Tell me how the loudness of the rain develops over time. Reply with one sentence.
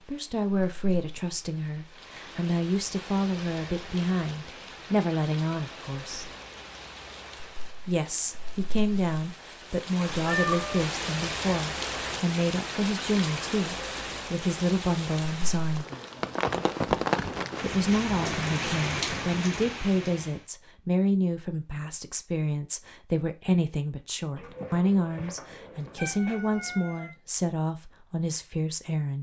The loudness of the rain goes up.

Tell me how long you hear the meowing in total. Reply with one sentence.
You can hear the meowing for 3 seconds altogether.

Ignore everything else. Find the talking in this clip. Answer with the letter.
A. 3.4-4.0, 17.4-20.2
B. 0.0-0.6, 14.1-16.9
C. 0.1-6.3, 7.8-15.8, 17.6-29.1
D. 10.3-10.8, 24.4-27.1
C.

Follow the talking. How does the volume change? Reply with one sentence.
The loudness of the talking stays about the same.